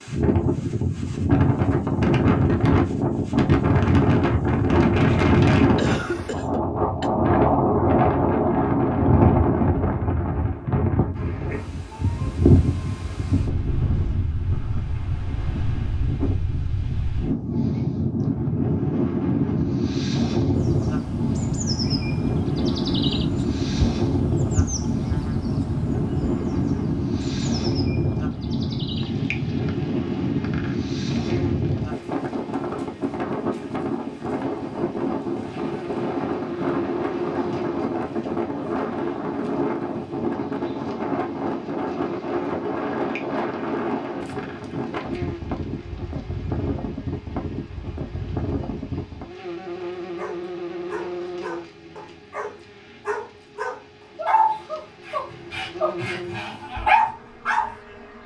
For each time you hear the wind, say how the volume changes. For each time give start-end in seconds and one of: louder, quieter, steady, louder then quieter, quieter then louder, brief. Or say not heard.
0.0-49.4 quieter.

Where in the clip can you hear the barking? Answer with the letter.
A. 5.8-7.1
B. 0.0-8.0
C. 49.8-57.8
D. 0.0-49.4
C.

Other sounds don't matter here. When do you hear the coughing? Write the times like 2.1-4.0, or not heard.
5.8-7.1.